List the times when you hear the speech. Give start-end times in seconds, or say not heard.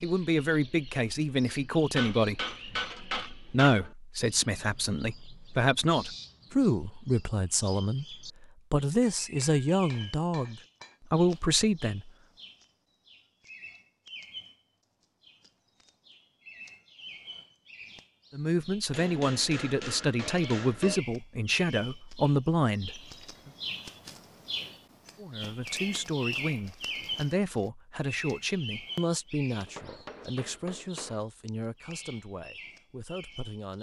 0.0-12.1, 18.3-23.5, 25.1-33.7.